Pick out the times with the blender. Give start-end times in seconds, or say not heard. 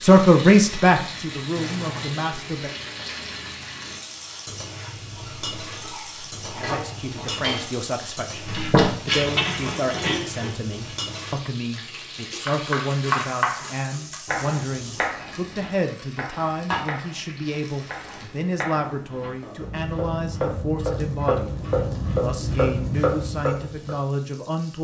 not heard.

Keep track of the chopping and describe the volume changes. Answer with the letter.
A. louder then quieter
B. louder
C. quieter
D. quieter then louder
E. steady
D.